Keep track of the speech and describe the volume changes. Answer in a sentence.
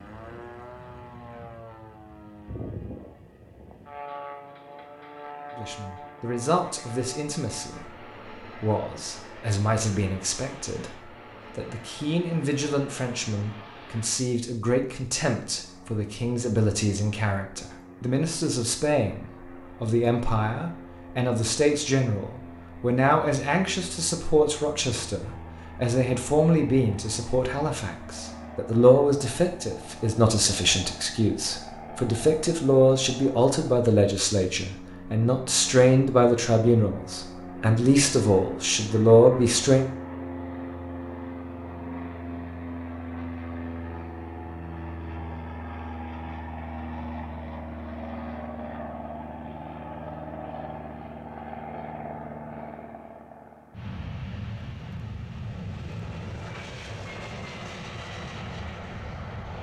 The volume of the speech goes up.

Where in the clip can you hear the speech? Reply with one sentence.
The speech can be heard from 5.5 to 39.9 s.